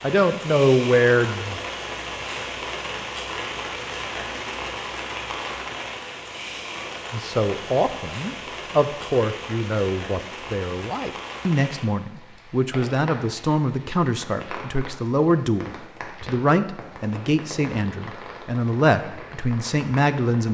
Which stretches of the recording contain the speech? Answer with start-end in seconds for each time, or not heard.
0.0-1.6, 7.1-20.4.